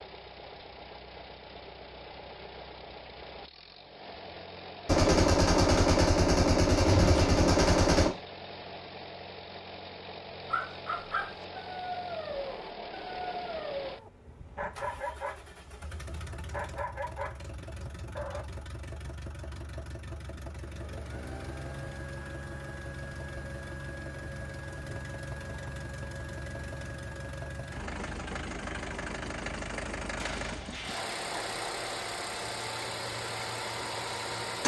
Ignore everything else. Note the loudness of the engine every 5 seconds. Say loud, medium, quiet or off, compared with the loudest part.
medium, medium, medium, medium, medium, loud, loud.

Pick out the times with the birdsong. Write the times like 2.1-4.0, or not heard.
not heard.